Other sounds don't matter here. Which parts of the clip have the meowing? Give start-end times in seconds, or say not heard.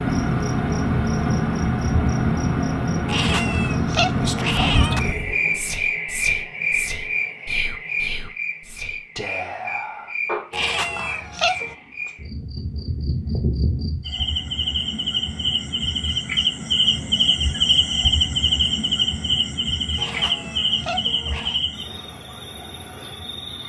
3.0-5.0, 10.5-11.8, 19.9-21.6.